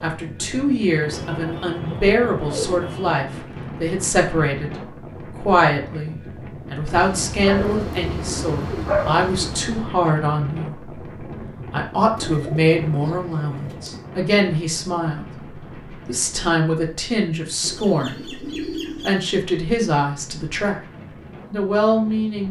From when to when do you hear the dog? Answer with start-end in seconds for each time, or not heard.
6.9-9.8.